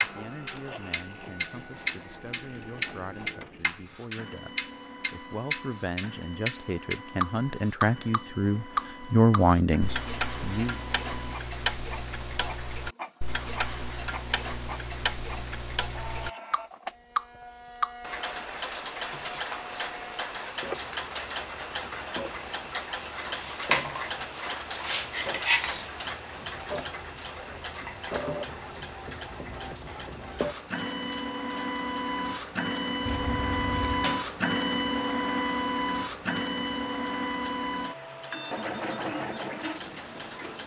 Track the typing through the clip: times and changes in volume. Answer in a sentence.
You can't hear the typing here.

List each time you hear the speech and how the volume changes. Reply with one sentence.
You can hear the speech from 0.0 to 10.8 s, getting louder.